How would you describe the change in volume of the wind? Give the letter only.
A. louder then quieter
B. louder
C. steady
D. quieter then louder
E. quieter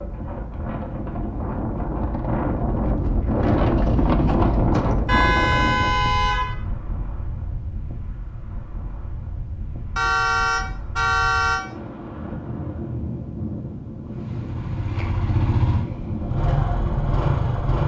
D.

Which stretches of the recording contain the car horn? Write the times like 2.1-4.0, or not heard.
5.0-6.5, 9.9-11.6.